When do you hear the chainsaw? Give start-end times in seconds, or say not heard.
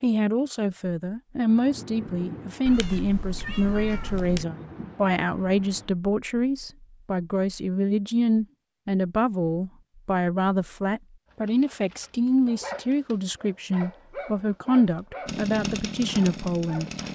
15.2-17.1.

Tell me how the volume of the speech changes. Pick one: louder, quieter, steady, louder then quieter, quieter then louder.
steady.